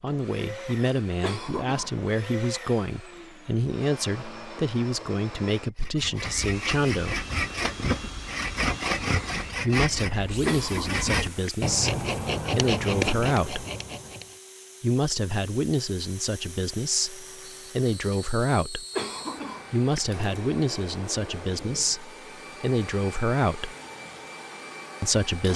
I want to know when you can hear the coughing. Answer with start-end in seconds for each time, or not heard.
1.2-2.1, 10.4-11.5, 18.9-20.0.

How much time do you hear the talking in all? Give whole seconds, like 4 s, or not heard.
20 s.